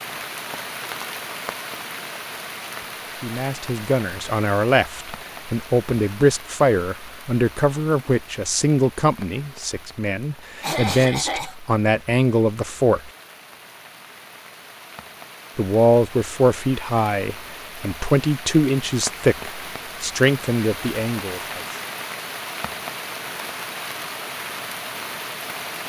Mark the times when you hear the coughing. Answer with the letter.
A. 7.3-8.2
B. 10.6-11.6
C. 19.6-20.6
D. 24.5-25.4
B.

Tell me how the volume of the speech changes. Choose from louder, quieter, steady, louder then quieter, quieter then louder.
steady.